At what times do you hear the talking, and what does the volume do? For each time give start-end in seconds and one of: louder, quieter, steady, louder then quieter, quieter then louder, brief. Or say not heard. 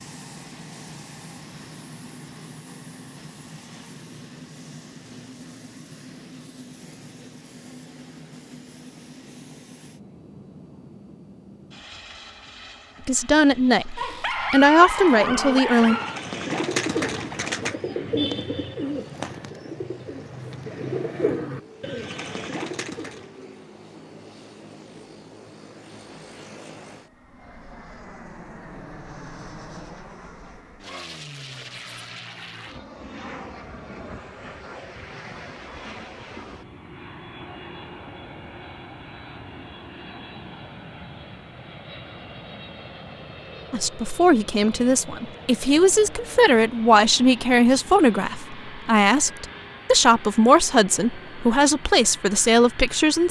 13.1-15.9 brief
43.7-53.2 steady.